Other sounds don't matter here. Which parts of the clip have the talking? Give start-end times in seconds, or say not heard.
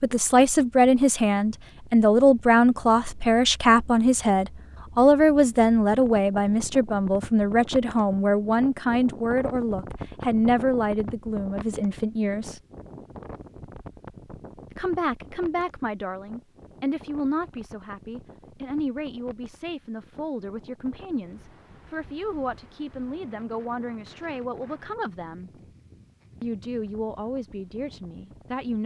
0.0-12.6, 14.7-25.5, 26.4-28.8.